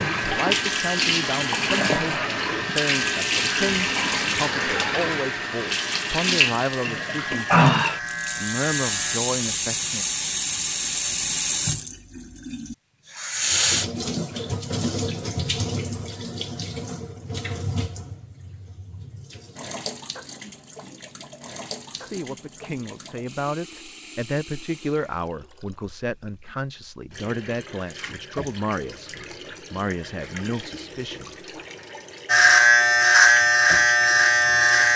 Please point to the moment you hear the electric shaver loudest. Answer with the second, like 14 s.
33 s.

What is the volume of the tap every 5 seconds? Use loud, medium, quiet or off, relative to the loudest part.
loud, loud, loud, medium, quiet, quiet, quiet.